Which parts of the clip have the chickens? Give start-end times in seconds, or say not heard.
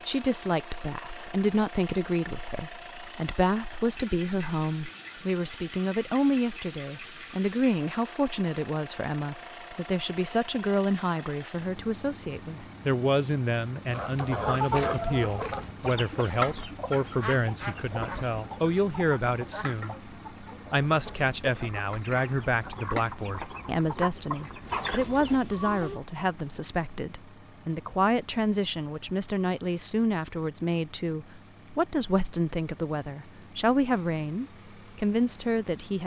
13.9-26.0.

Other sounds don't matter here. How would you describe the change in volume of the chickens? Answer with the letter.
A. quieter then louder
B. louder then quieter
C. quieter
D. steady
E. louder
A.